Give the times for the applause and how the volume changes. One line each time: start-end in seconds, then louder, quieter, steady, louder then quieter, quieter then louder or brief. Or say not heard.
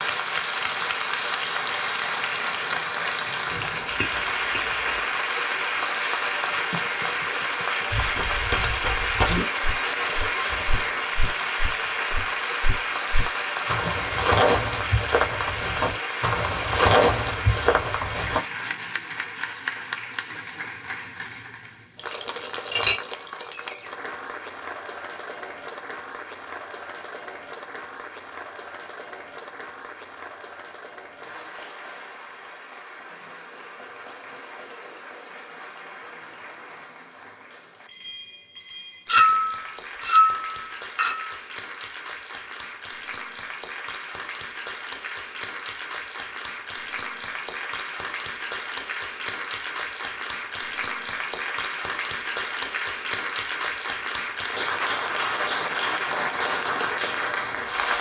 0.0-57.9 quieter then louder.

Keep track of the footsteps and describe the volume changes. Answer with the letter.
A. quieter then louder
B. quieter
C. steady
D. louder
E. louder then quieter
A.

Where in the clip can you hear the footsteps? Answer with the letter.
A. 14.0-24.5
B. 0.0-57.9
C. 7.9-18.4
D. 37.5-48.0
C.